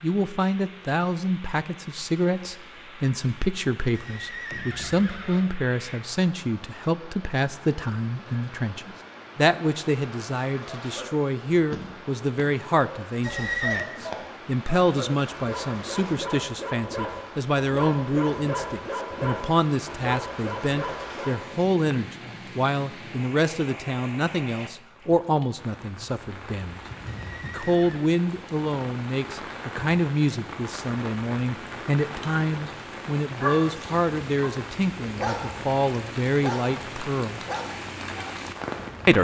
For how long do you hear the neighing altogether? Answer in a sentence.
The neighing can be heard for 3 seconds in total.